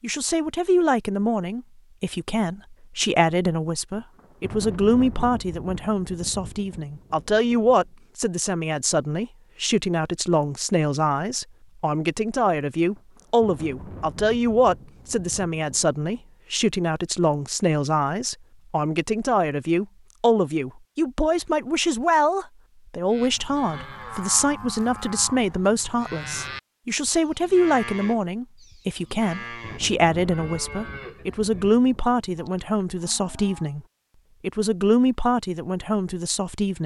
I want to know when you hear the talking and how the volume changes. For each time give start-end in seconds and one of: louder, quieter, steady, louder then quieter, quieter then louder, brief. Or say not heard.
0.0-33.8 steady
34.4-36.8 brief.